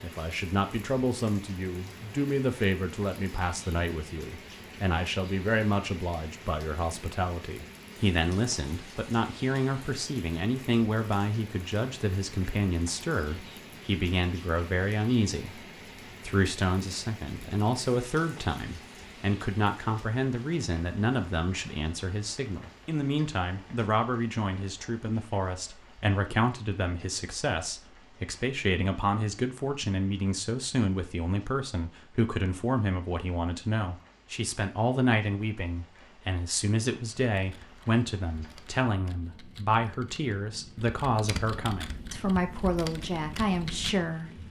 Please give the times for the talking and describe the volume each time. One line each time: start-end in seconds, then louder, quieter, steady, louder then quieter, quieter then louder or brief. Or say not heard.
0.0-44.4 steady.